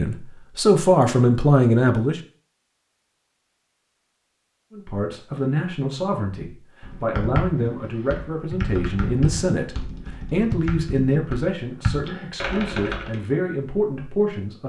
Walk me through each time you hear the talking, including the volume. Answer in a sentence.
You can hear the talking briefly from 0.0 to 2.2 s; and from 4.7 to 14.6 s, at a steady volume.